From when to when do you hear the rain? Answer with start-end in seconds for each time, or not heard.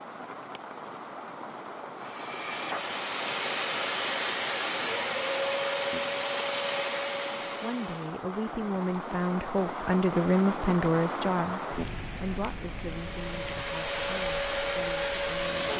0.0-15.7.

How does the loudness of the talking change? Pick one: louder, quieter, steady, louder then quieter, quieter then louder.
louder then quieter.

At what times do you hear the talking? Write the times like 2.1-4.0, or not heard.
7.6-15.7.